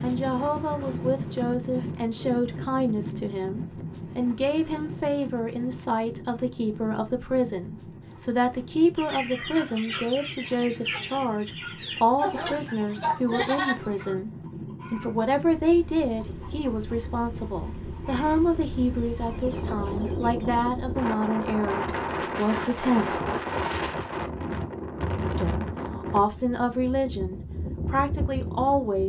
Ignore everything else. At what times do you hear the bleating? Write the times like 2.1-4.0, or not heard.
13.0-14.2.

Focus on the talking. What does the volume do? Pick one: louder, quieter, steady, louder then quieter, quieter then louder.
steady.